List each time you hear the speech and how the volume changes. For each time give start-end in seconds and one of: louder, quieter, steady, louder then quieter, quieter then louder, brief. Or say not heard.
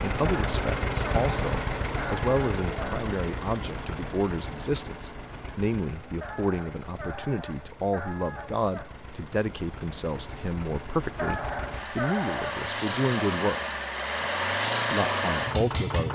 0.0-13.6 steady
14.9-16.1 brief.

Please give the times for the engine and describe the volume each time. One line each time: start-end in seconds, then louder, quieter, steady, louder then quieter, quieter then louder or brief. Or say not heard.
0.0-16.1 quieter then louder.